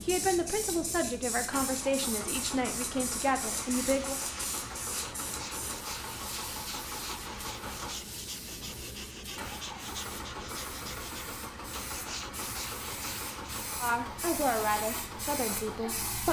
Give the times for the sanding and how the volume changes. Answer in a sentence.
The sanding can be heard from 3.5 to 13.7 s, at a steady volume.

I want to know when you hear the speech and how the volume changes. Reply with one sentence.
The speech can be heard from 0.0 to 4.2 s, at a steady volume; and briefly from 13.8 to 16.2 s.